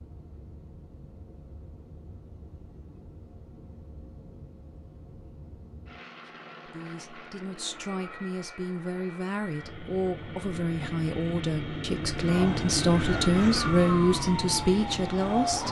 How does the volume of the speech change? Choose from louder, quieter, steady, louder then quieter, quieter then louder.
louder.